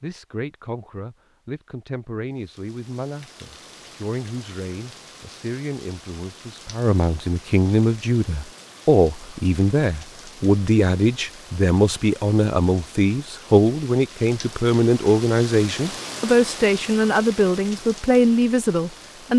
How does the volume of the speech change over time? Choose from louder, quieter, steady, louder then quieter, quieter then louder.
louder.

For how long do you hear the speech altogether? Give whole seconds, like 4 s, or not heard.
19 s.